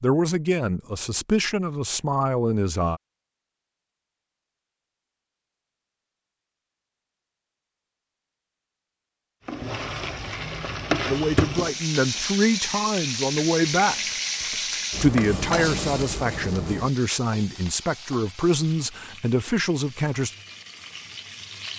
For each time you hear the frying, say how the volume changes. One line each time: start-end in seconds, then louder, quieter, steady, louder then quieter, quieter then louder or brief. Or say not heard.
9.4-21.7 quieter.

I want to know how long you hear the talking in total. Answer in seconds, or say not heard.
12 s.